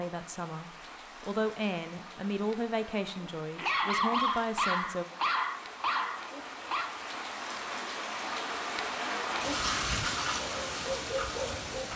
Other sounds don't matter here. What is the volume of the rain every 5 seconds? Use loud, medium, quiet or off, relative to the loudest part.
quiet, loud, loud.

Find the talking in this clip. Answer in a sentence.
You can hear the talking from 0.0 to 5.0 s.